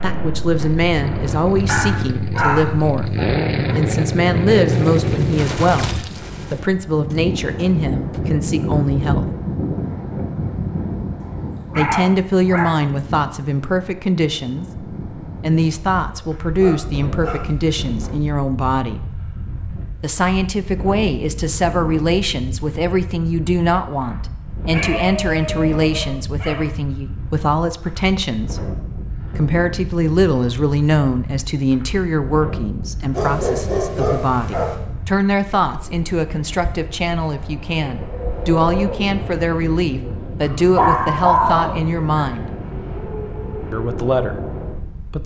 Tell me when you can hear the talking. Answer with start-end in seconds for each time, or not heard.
0.0-9.2, 11.8-19.1, 20.0-42.5, 43.7-45.2.